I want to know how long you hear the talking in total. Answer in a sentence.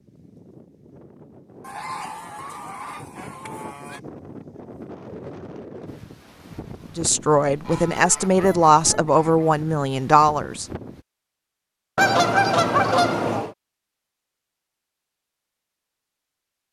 The talking can be heard for 4 seconds in total.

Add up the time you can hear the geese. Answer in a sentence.
The geese can be heard for 6 seconds in total.